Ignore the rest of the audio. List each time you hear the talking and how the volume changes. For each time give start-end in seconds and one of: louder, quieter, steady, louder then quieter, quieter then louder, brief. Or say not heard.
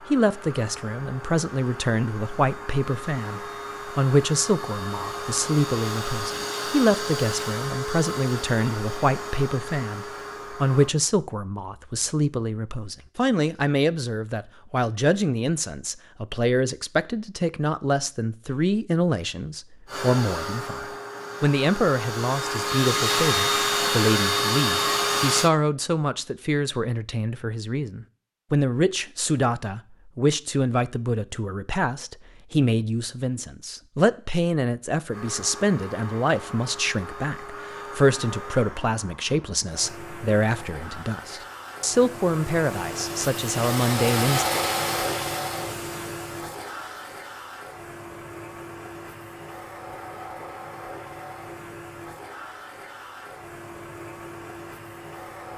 0.1-44.5 steady.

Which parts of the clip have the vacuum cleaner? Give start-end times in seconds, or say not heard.
0.0-10.9, 19.9-25.5, 35.0-55.5.